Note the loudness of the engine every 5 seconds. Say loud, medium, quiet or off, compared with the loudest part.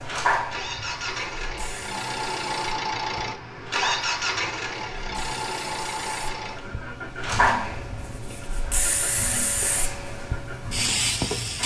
loud, medium, medium.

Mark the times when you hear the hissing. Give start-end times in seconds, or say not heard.
0.0-11.6.